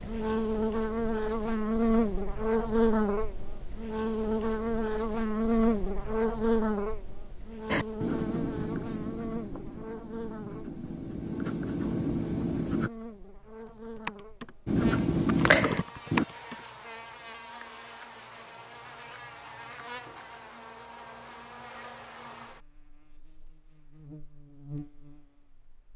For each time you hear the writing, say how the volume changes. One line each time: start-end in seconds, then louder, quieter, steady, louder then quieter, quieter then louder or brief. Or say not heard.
7.7-12.9 quieter then louder
14.7-16.2 brief.